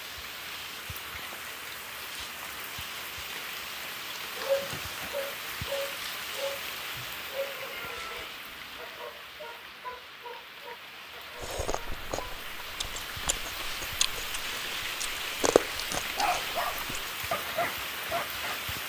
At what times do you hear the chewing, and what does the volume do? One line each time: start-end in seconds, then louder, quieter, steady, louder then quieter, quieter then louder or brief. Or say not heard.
11.3-17.1 louder then quieter.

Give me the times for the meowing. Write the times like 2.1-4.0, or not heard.
7.7-8.8.